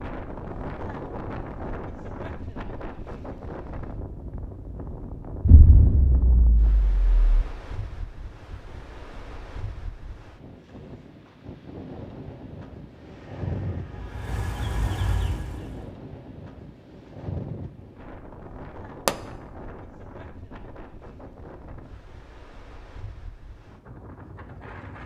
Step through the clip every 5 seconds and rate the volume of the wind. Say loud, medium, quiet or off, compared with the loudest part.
loud, medium, loud, loud, medium.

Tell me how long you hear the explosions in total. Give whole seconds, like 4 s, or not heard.
2 s.